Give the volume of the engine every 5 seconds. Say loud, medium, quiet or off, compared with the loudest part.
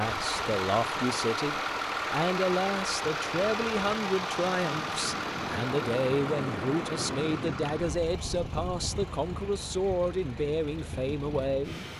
loud, medium, quiet.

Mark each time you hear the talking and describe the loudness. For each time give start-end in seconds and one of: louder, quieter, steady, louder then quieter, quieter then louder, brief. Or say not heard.
0.0-11.8 steady.